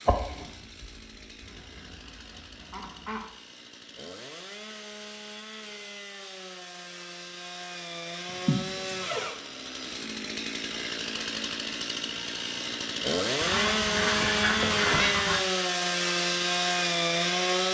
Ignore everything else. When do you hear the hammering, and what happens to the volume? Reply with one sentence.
The hammering can't be heard in this clip.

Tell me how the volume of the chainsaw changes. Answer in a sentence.
The loudness of the chainsaw goes up.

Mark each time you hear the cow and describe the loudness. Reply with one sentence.
You can't hear the cow here.